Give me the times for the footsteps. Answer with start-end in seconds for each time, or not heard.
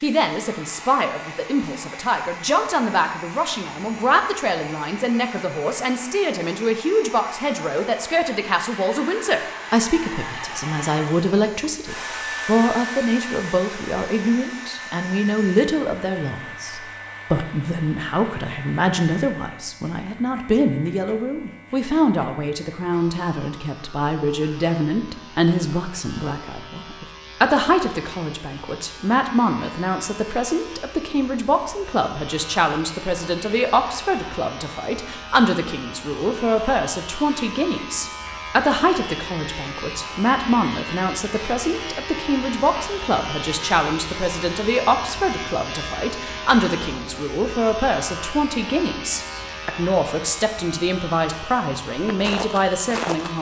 52.0-53.3.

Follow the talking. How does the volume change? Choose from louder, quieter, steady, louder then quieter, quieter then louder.
steady.